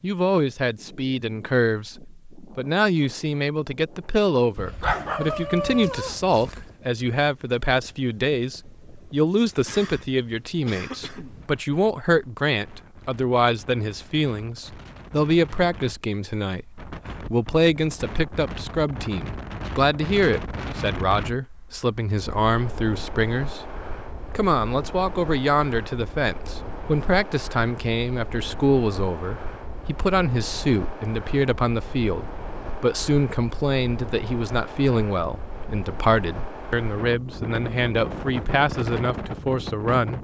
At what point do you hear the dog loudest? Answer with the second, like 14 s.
5 s.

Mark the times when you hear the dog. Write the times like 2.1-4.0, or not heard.
4.5-6.8.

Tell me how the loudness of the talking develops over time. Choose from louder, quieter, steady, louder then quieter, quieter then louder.
steady.